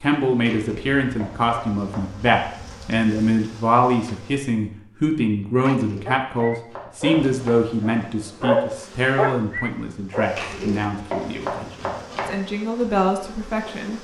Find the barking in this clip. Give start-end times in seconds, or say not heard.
5.6-10.5.